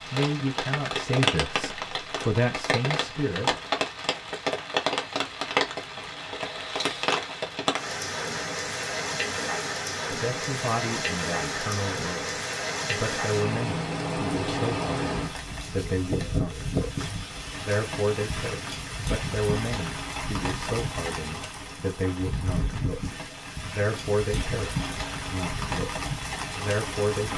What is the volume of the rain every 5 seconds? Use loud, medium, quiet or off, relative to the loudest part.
loud, loud, loud, loud, medium, loud.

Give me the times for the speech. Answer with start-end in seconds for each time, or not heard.
0.1-3.5, 10.1-27.3.